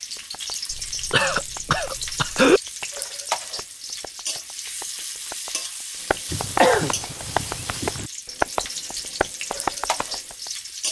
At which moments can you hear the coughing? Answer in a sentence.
The coughing can be heard from 0.7 to 2.6 s and from 6.3 to 8.1 s.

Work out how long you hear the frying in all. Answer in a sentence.
The frying can be heard for 11 seconds in total.